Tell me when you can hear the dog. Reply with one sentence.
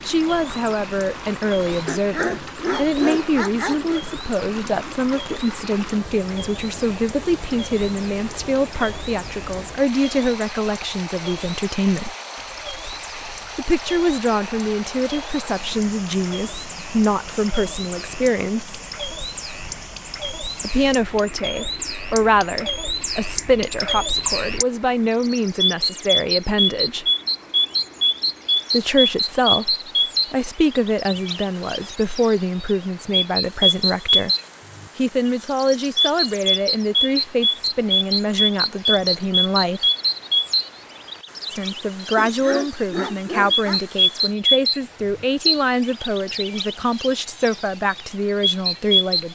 The dog can be heard from 1.9 to 4.0 s and from 42.1 to 43.8 s.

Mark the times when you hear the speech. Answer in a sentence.
The speech can be heard from 0.1 to 12.2 s, from 13.6 to 18.8 s, from 20.6 to 27.1 s, from 28.7 to 34.3 s, from 35.0 to 39.9 s and from 41.5 to 49.3 s.